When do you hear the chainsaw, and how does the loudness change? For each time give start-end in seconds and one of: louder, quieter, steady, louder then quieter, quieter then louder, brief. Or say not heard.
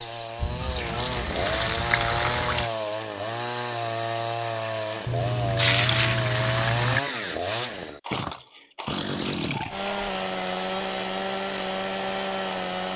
0.0-12.9 steady.